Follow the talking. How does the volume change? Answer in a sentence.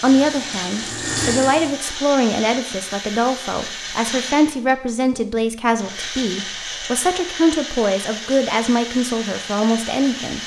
The volume of the talking stays about the same.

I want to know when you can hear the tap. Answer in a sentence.
The tap can be heard from 0.0 to 1.8 s.